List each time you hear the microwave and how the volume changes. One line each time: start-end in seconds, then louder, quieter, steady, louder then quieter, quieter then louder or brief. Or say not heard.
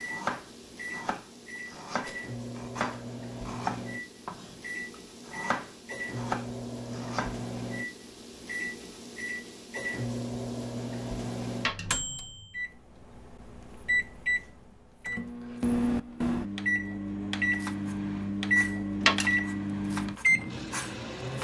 0.0-21.3 louder.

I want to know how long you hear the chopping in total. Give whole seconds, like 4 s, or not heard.
11 s.